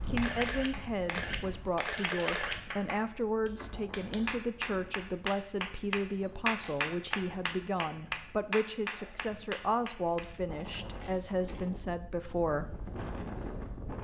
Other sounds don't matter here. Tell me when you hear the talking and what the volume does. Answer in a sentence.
You can hear the talking from 0.1 to 12.8 s, at a steady volume.